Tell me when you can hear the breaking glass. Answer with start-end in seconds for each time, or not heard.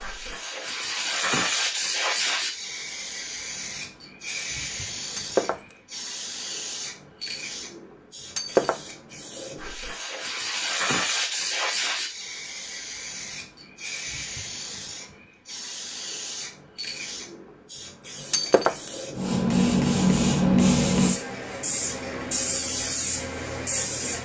5.2-5.8, 8.3-8.9, 18.3-18.9.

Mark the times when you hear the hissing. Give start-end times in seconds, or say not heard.
0.0-24.1.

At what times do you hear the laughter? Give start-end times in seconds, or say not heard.
not heard.